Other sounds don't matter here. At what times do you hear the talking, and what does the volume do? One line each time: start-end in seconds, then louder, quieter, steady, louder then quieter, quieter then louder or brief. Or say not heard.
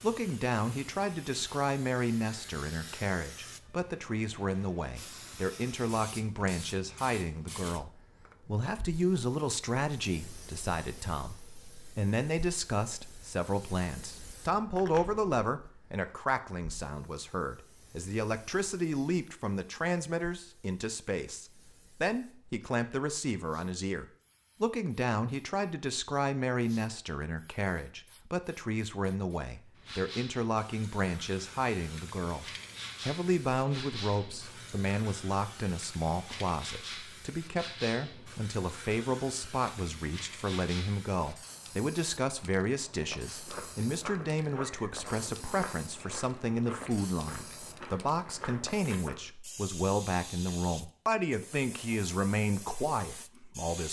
0.0-53.8 steady.